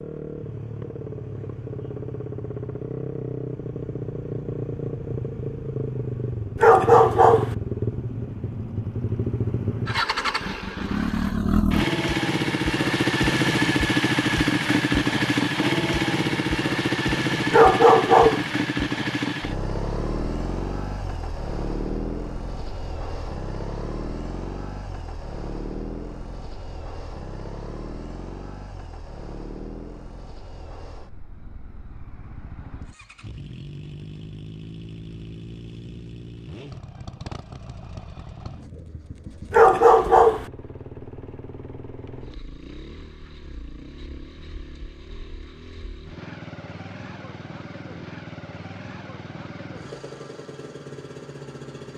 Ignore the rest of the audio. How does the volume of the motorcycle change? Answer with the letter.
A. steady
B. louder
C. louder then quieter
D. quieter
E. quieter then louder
C.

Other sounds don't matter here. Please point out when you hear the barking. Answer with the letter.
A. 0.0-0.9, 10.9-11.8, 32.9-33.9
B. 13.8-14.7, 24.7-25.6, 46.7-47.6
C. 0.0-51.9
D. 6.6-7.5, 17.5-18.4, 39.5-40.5
D.